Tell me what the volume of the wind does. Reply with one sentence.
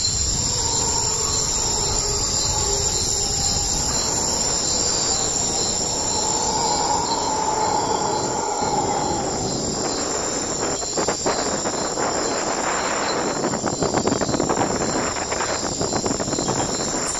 The volume of the wind goes up.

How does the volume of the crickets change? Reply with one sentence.
The loudness of the crickets goes down.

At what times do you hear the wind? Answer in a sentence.
You can hear the wind from 0.0 to 17.1 s.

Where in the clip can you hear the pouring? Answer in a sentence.
The pouring can't be heard in this clip.